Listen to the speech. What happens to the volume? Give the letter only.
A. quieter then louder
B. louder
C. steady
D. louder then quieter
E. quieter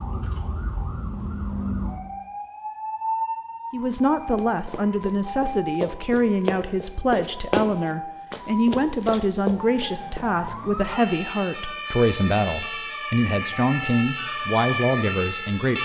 C.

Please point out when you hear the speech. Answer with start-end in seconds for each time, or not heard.
3.7-15.8.